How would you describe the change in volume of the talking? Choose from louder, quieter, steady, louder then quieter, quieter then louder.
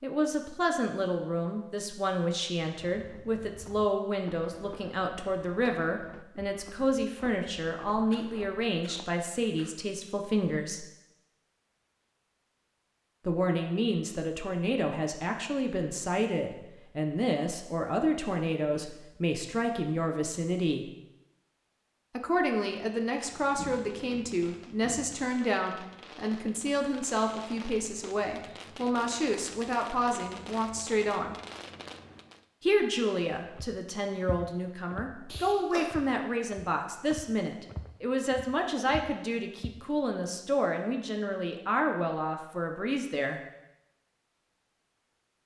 steady.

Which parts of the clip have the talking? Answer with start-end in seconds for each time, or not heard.
0.0-10.8, 13.2-20.9, 22.1-31.4, 32.6-43.4.